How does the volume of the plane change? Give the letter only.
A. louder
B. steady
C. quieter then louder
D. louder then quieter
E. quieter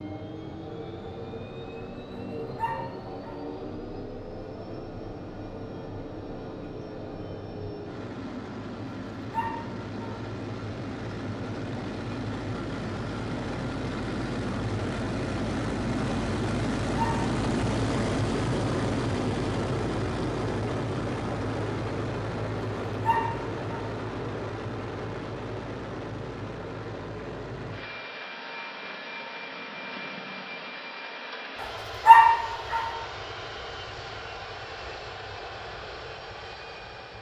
D.